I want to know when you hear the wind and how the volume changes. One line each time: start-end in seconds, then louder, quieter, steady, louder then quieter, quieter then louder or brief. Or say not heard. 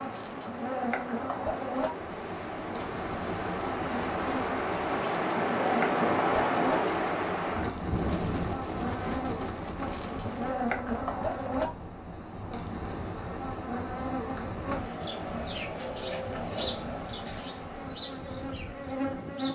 0.0-19.5 louder then quieter.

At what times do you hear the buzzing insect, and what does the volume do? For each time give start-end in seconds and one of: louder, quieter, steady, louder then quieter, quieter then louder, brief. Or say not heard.
0.0-19.5 steady.